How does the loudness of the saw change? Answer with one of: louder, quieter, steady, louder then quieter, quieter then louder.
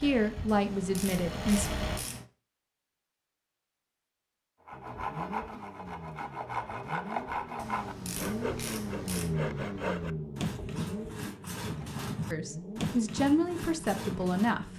steady.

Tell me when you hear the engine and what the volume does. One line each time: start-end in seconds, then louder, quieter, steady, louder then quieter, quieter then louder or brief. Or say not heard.
0.0-2.0 brief
4.7-14.7 louder then quieter.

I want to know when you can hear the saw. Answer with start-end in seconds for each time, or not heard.
4.7-14.7.